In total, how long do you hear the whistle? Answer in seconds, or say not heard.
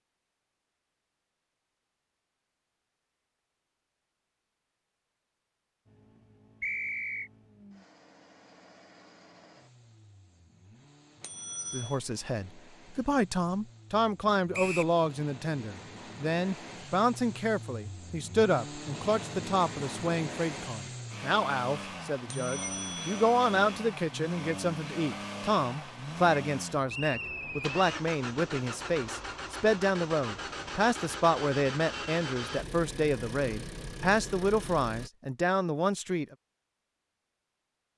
2 s.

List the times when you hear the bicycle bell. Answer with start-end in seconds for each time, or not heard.
11.2-12.0, 22.2-23.8.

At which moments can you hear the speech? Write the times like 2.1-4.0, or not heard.
11.7-36.4.